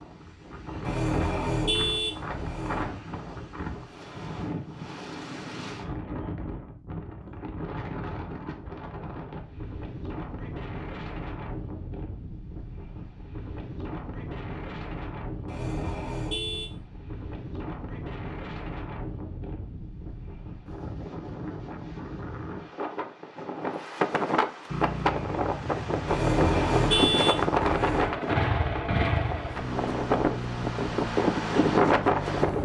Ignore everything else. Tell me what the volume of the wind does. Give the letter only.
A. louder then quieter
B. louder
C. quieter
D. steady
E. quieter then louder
B.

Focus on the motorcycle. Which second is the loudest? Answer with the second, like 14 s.
29 s.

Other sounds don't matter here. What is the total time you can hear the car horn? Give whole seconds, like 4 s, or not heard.
5 s.